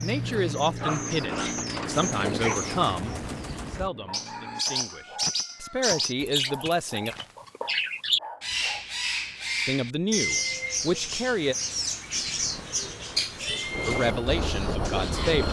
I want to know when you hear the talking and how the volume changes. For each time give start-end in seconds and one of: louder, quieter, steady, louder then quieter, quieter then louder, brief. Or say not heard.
0.0-7.2 quieter then louder
9.7-11.6 brief
13.8-15.4 brief.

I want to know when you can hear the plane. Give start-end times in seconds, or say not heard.
0.0-4.7, 12.1-15.4.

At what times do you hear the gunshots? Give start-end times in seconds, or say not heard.
1.9-3.9.